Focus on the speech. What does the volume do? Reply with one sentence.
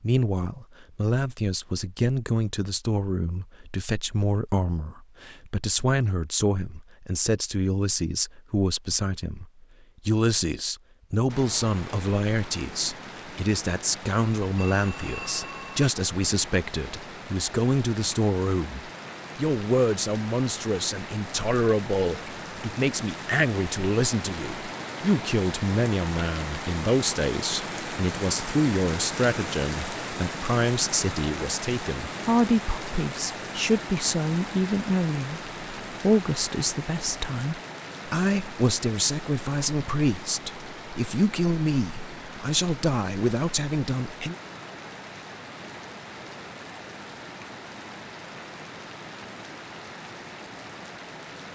The volume of the speech stays about the same.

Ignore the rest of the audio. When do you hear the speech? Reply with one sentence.
You can hear the speech from 0.0 to 44.4 s.